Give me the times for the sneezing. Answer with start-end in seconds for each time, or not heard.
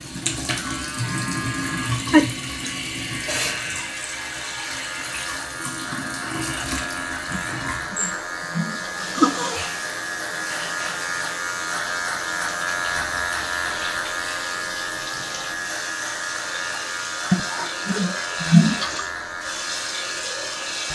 0.9-2.4, 7.3-9.6, 17.3-19.1.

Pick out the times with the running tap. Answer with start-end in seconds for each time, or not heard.
0.0-20.8.